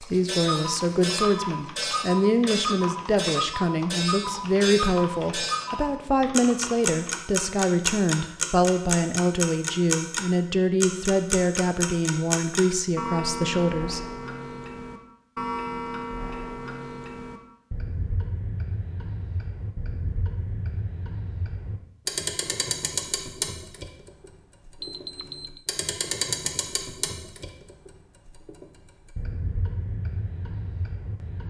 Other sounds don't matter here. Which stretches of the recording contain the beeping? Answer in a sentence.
The beeping can be heard from 24.8 to 25.6 s.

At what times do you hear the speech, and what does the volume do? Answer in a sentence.
You can hear the speech from 0.0 to 14.0 s, at a steady volume.